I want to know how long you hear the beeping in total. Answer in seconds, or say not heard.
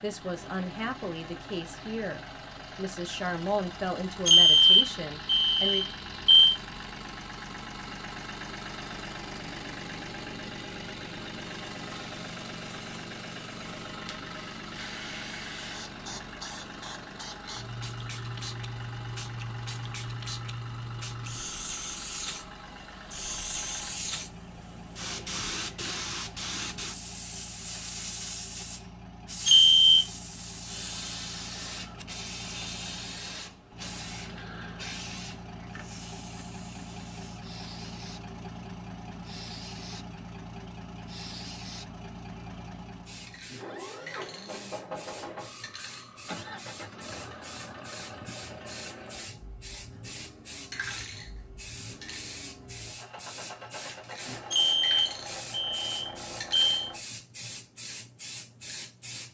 5 s.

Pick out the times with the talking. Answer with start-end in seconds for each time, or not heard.
0.0-5.8.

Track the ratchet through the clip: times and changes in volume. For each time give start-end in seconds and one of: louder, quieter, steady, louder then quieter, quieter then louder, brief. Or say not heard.
not heard.